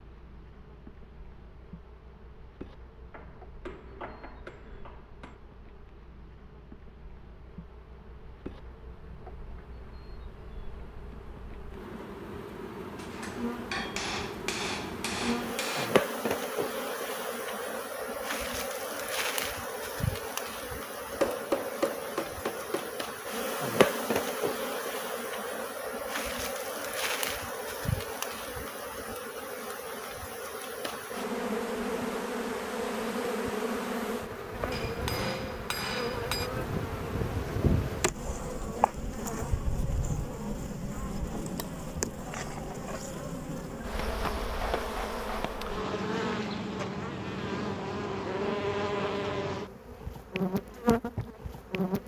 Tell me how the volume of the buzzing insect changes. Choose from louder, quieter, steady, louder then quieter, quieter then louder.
louder.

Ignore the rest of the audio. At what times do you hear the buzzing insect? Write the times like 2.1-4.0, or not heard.
0.0-52.0.